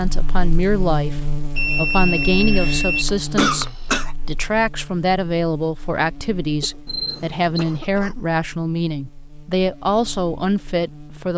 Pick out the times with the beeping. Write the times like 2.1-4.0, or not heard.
1.6-3.0, 6.8-7.8.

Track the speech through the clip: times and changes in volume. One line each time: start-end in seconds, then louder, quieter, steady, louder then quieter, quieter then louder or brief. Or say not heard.
0.0-11.3 steady.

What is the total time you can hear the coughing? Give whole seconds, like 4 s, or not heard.
3 s.